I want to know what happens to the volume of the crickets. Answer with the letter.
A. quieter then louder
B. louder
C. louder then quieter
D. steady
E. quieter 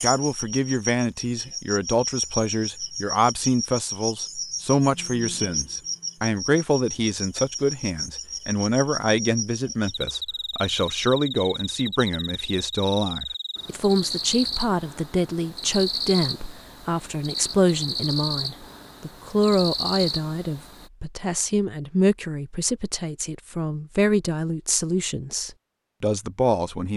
D.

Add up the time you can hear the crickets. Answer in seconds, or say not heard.
21 s.